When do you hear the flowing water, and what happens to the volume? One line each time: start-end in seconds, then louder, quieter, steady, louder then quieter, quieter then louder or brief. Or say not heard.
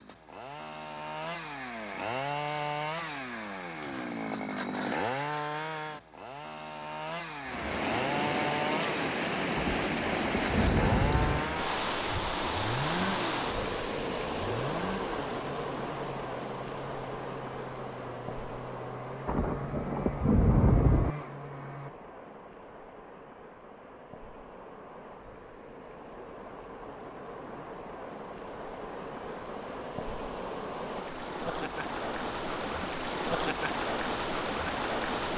7.4-35.3 quieter then louder.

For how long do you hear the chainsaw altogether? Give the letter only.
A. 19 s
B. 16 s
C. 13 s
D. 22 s
D.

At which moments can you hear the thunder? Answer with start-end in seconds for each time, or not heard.
9.6-11.4, 19.2-21.1.